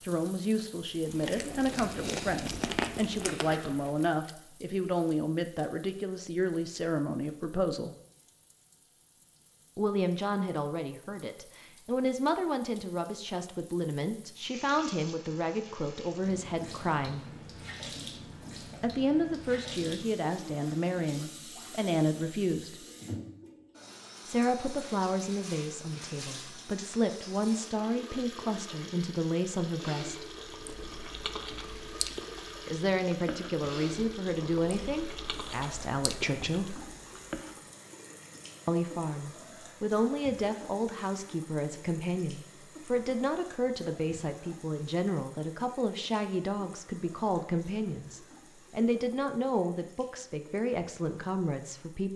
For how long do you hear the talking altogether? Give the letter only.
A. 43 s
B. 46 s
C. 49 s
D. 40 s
A.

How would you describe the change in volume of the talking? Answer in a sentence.
The volume of the talking stays about the same.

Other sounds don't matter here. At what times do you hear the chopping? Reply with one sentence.
You can't hear the chopping here.